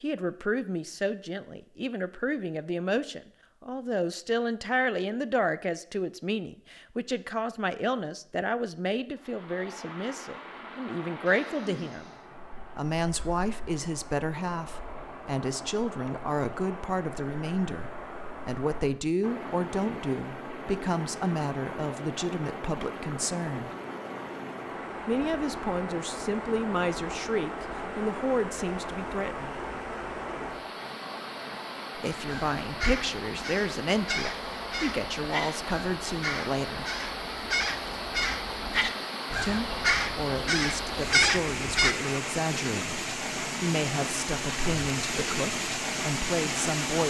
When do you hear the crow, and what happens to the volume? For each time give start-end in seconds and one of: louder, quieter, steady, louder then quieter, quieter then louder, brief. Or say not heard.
32.2-42.0 louder.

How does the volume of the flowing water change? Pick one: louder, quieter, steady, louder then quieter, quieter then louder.
louder.